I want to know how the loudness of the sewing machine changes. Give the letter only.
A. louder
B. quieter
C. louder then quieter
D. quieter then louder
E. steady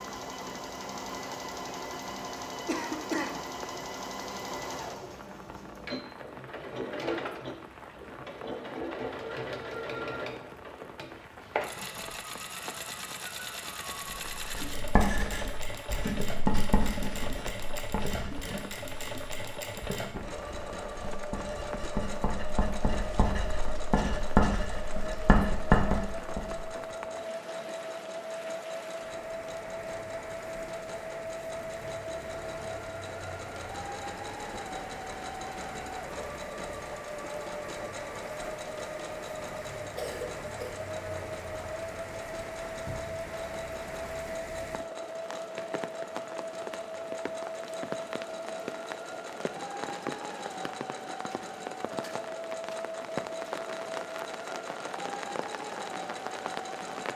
E.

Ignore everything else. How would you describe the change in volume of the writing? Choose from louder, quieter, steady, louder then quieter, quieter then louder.
quieter then louder.